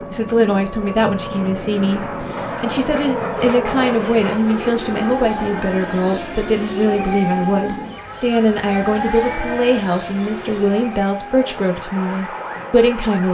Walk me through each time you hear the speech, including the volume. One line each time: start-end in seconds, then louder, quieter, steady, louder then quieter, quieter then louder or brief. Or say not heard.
0.0-13.2 steady.